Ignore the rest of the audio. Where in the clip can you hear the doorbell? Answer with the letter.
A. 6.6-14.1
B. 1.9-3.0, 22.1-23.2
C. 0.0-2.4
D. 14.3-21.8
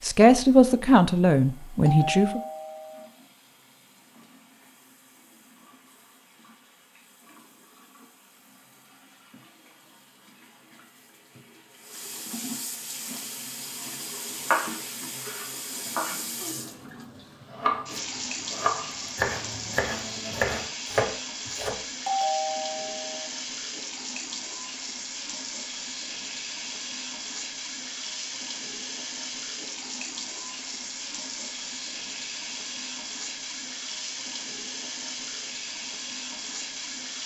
B.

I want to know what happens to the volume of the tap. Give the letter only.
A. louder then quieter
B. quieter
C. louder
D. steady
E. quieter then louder
C.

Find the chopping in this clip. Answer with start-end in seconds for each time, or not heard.
14.3-21.8.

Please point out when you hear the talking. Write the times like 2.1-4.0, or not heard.
0.0-2.4.